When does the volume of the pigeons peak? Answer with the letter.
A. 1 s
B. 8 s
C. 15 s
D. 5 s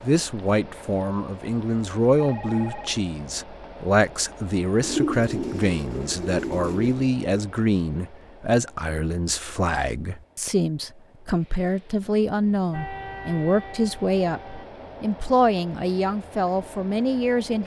D.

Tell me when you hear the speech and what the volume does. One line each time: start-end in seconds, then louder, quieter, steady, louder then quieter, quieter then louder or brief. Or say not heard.
0.0-17.6 steady.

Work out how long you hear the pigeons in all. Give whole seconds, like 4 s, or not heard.
2 s.